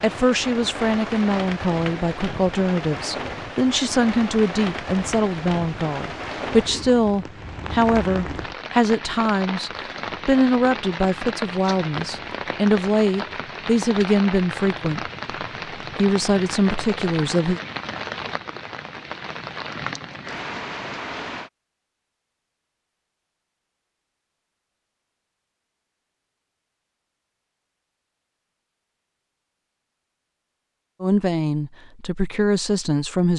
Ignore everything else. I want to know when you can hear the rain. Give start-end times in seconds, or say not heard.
0.0-21.5.